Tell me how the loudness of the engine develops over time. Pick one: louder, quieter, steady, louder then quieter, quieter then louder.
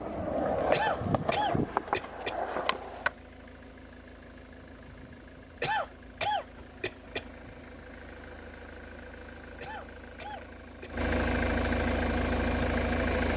louder.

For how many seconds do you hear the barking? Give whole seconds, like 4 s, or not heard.
not heard.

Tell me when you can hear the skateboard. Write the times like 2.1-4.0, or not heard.
0.0-3.1.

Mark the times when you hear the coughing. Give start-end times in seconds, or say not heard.
0.7-2.4, 5.6-7.2, 9.6-10.9.